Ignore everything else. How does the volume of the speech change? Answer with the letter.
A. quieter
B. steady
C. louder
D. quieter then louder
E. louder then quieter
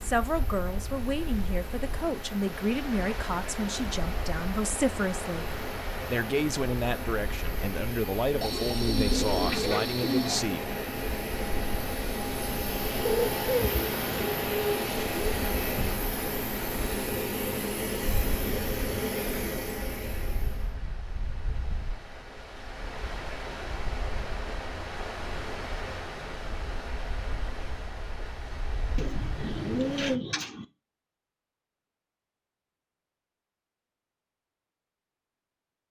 B.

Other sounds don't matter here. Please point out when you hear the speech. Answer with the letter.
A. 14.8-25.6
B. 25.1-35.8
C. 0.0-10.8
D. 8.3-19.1
C.